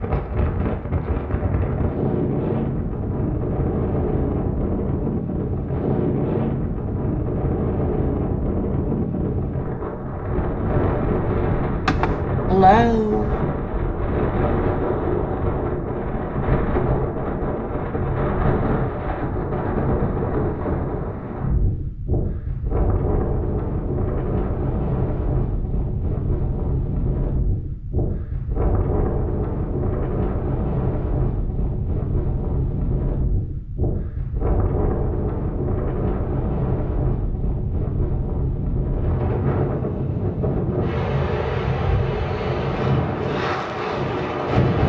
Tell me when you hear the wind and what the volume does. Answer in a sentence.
The wind can be heard from 0.0 to 44.8 s, at a steady volume.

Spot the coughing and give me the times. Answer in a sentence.
The coughing can be heard from 11.8 to 13.3 s.